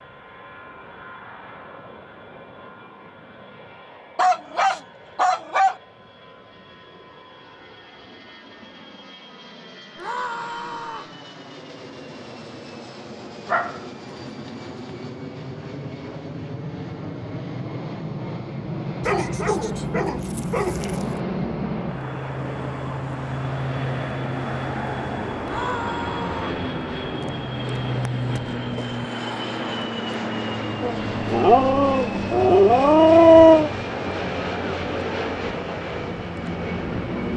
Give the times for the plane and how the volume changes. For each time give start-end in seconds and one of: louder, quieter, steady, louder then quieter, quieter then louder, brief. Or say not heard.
0.0-37.3 louder.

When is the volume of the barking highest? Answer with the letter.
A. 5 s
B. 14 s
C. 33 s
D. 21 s
C.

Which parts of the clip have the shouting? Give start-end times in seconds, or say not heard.
9.9-11.1, 25.4-26.6.